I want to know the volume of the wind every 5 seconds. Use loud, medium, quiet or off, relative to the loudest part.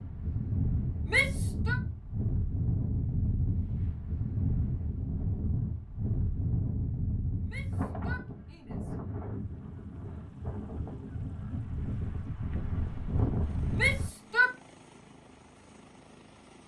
loud, loud, loud, off.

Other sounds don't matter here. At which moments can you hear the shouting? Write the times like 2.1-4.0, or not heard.
1.1-1.8, 7.5-8.9, 13.8-14.5.